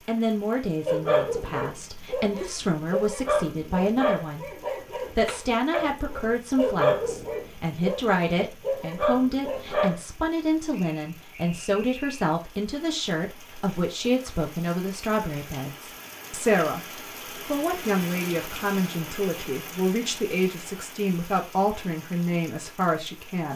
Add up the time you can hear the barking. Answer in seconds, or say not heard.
9 s.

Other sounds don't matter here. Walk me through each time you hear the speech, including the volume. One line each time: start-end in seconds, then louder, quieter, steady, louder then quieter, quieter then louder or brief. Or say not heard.
0.1-23.5 steady.